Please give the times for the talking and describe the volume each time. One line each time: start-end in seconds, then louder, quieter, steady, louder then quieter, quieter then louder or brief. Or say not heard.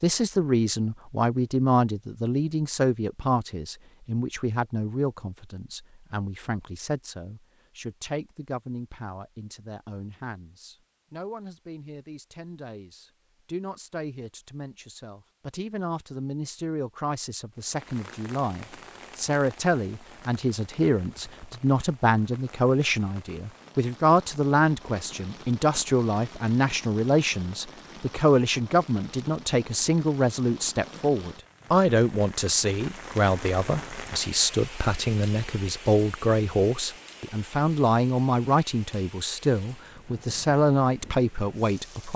0.0-42.1 quieter then louder.